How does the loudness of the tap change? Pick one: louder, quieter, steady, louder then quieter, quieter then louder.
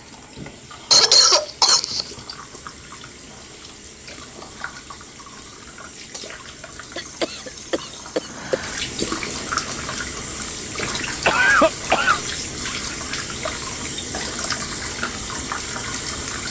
louder.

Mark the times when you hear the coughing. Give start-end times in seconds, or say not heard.
0.9-2.0, 7.0-8.8, 11.2-12.2.